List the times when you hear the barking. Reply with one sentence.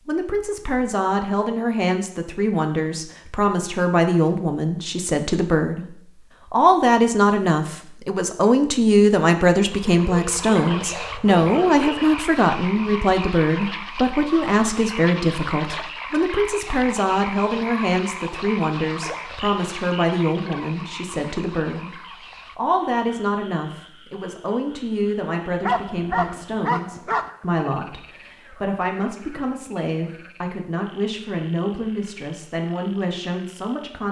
You can hear the barking from 9.8 to 12.1 s and from 25.6 to 27.3 s.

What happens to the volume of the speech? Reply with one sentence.
The volume of the speech goes down.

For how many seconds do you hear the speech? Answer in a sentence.
You can hear the speech for 34 seconds altogether.